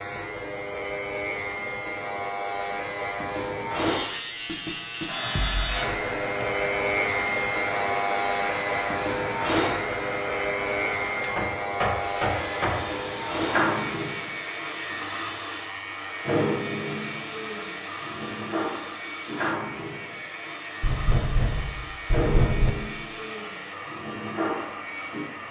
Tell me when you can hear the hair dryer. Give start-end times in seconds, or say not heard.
5.0-25.4.